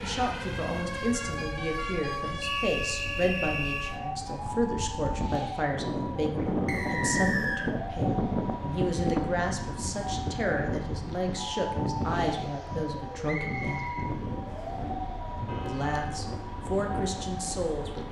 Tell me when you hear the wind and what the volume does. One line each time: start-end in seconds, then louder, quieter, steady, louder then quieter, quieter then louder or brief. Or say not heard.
0.0-18.0 louder then quieter.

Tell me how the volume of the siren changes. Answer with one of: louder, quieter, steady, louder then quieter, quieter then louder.
steady.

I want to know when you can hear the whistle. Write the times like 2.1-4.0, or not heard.
2.4-4.0, 6.7-7.7, 13.2-14.8.